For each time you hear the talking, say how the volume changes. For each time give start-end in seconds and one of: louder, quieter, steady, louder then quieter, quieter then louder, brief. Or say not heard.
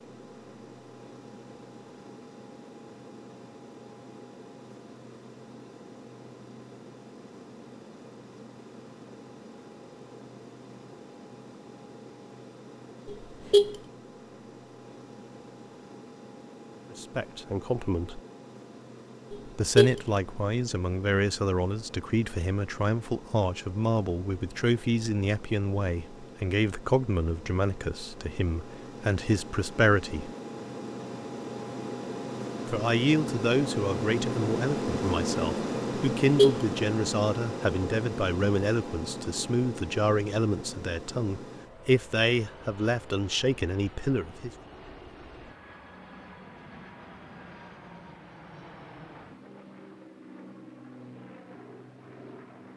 16.9-18.2 brief
19.5-30.3 steady
32.6-44.5 steady.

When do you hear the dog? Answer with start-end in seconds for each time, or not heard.
not heard.